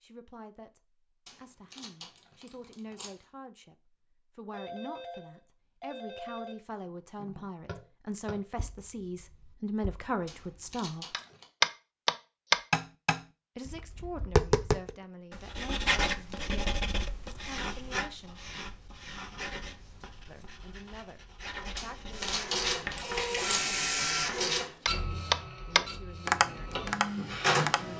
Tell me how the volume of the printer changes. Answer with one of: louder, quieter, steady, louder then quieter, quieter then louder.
quieter then louder.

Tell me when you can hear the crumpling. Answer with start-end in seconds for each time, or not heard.
1.2-3.2, 10.2-11.4, 21.8-23.8.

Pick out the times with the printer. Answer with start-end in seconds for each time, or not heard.
22.1-27.9.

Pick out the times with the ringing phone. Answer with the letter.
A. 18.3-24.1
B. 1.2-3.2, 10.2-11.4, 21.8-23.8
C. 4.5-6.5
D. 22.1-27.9
C.